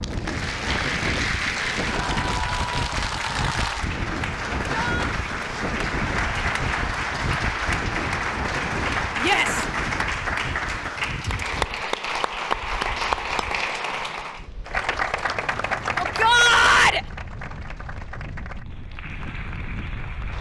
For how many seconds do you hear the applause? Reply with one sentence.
You can hear the applause for 20 seconds altogether.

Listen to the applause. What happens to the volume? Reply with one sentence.
The volume of the applause goes down.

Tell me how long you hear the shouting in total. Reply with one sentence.
You can hear the shouting for 2 seconds altogether.